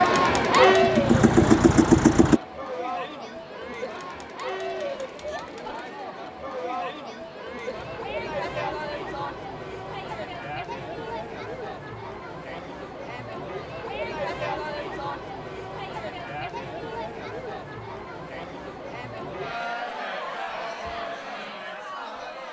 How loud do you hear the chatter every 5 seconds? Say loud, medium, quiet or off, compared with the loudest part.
loud, medium, medium, medium, medium.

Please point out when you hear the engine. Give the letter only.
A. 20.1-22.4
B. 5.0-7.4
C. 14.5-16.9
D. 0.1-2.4
D.